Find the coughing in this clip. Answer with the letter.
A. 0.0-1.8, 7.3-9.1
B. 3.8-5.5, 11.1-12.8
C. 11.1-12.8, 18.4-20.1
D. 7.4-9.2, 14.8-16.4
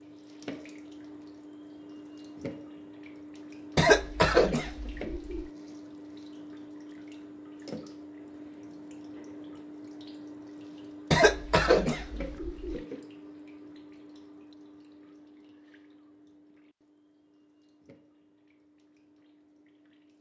B.